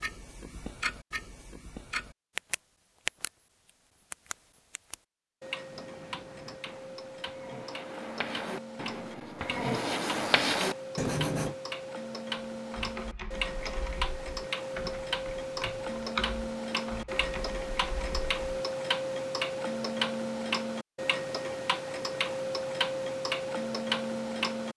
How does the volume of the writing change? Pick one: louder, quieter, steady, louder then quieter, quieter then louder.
louder.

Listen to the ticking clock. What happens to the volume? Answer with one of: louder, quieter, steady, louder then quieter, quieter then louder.
louder.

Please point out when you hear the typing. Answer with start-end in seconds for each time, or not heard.
12.7-18.4.